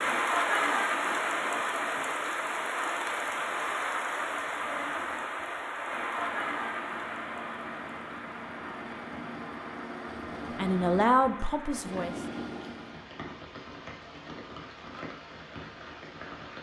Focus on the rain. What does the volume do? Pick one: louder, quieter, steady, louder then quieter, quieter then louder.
quieter.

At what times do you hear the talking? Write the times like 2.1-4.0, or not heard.
10.6-12.1.